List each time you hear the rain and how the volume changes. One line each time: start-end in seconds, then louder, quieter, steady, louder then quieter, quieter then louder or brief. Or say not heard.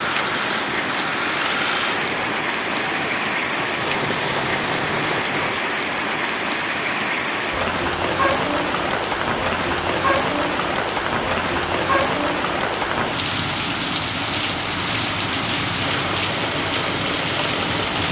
0.0-18.0 steady.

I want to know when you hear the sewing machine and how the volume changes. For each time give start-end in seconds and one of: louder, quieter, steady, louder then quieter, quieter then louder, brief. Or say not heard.
0.1-5.6 quieter then louder
15.8-18.0 brief.